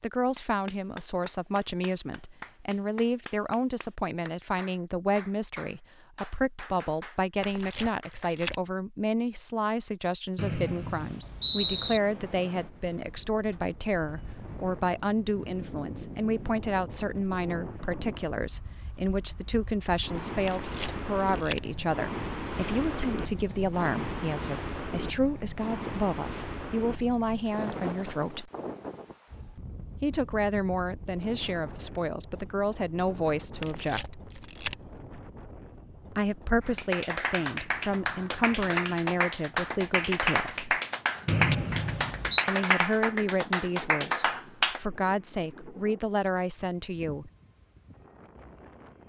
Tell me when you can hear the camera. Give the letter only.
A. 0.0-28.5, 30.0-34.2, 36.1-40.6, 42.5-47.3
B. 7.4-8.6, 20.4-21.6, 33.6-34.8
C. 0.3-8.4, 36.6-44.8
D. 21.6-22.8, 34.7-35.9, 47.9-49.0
B.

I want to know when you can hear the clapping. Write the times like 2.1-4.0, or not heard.
0.3-8.4, 36.6-44.8.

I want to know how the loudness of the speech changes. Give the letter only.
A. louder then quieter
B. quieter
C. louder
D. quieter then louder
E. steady
E.